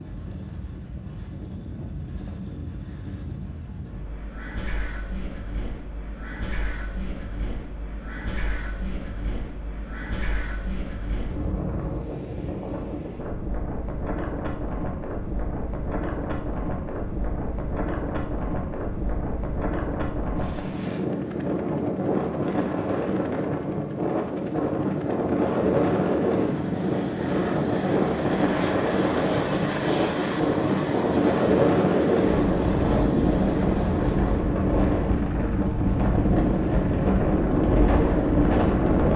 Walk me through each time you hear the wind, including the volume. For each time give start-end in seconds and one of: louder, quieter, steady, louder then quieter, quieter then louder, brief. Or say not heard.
0.0-39.1 louder.